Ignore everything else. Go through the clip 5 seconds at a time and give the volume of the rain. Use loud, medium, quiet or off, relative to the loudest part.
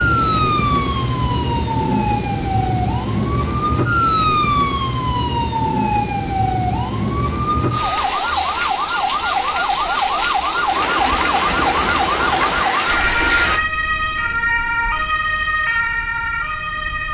loud, loud, loud, off.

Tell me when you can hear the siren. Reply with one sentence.
The siren can be heard from 0.0 to 17.0 s.